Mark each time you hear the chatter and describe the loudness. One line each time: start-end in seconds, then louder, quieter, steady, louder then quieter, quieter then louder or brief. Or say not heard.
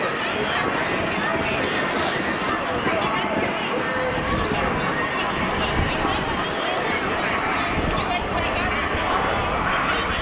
0.0-10.1 steady.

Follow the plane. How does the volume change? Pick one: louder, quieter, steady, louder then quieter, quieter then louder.
steady.